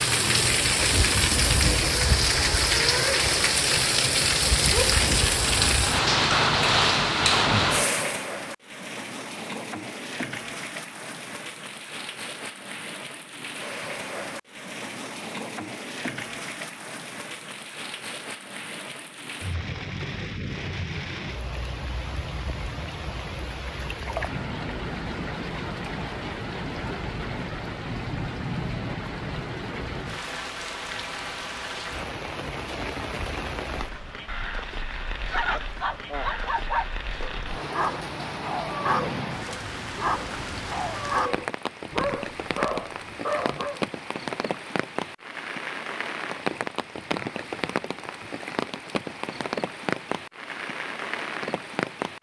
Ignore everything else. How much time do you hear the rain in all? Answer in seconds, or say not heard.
52 s.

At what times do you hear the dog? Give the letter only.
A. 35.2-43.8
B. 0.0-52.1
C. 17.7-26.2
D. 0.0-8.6
A.